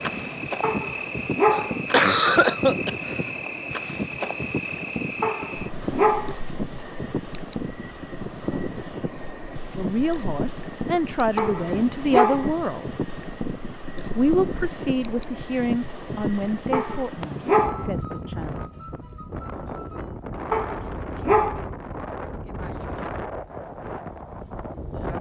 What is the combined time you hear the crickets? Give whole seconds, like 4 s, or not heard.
20 s.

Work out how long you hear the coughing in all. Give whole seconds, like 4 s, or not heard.
2 s.